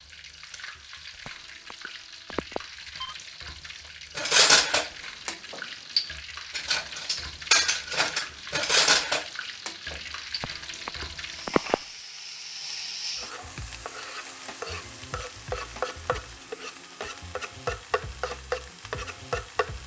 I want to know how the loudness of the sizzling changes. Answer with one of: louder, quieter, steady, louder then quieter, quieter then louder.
louder.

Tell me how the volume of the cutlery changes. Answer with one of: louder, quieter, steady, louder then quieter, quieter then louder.
steady.